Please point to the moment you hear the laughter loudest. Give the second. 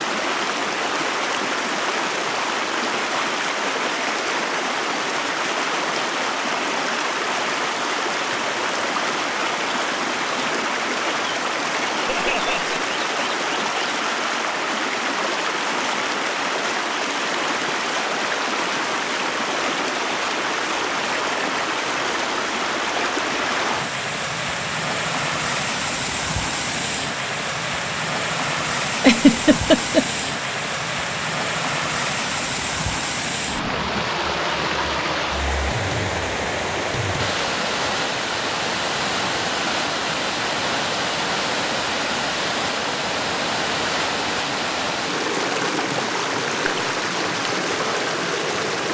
29 s.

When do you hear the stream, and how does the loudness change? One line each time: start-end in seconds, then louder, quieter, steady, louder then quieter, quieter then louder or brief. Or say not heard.
0.0-48.9 steady.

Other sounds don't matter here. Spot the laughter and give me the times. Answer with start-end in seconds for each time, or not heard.
12.1-12.9, 28.9-30.1.